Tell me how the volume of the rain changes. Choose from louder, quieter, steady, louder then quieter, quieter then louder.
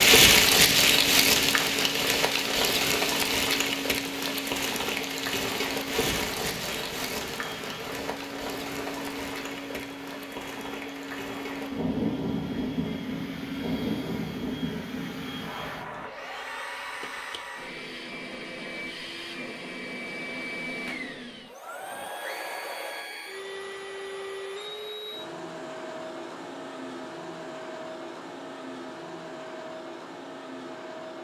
quieter.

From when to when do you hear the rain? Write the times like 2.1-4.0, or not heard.
0.0-16.1.